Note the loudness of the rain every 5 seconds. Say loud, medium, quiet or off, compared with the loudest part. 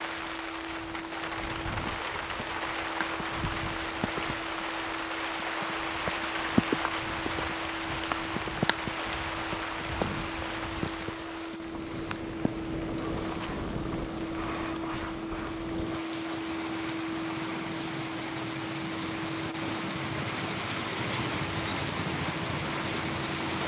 loud, loud, medium, medium, loud.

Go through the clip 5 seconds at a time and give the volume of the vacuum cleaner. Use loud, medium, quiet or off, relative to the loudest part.
medium, medium, loud, loud, medium.